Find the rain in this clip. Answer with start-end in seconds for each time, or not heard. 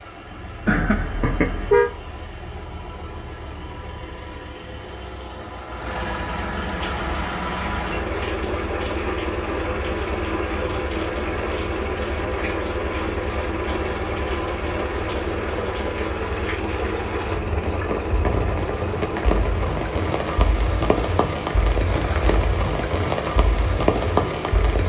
6.8-24.8.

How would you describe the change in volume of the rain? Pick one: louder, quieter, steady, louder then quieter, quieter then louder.
louder.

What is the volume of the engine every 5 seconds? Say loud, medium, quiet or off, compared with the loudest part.
medium, loud, loud, loud, medium.